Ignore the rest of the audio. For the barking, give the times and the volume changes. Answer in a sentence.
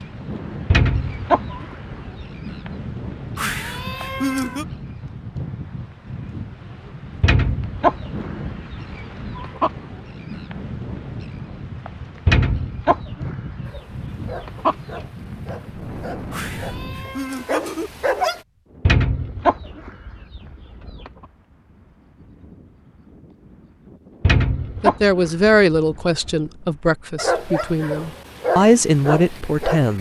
You can hear the barking from 13.7 to 18.4 s, getting quieter then louder; and briefly from 27.1 to 29.9 s.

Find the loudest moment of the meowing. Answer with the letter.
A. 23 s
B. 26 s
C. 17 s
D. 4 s
D.